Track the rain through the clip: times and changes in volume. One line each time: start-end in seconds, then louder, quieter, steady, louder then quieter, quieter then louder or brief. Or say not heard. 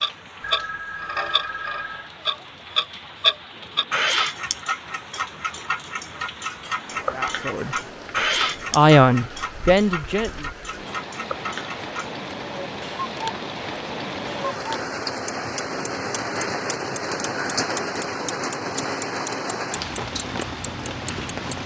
0.0-21.6 louder.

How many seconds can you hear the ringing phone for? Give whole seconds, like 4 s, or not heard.
2 s.